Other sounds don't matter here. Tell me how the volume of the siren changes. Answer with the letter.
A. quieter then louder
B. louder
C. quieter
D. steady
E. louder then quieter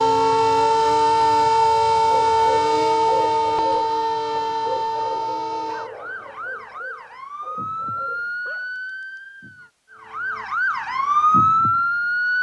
A.